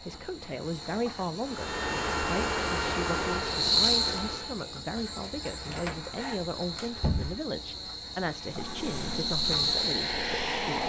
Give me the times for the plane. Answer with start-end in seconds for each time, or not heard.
1.4-4.5, 8.4-10.8.